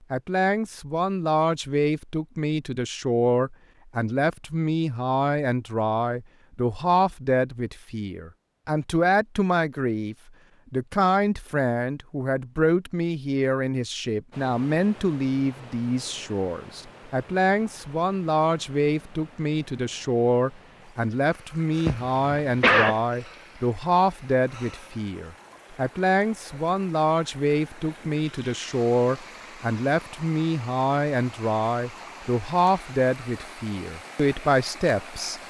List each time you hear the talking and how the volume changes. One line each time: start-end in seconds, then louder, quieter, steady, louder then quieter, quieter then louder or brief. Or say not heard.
0.1-35.4 steady.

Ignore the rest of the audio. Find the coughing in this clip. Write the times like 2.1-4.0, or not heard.
21.9-23.0.